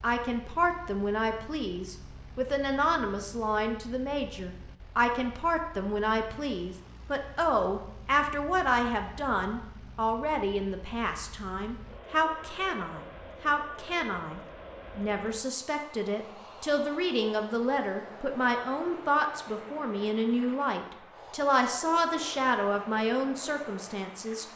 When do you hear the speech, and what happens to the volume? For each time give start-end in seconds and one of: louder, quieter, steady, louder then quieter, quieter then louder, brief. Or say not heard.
0.0-24.4 steady.